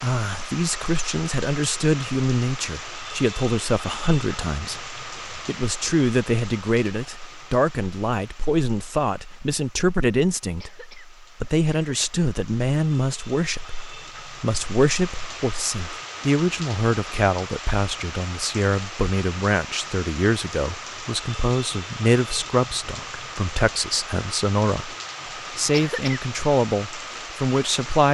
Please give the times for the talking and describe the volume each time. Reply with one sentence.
You can hear the talking from 0.0 to 28.0 s, at a steady volume.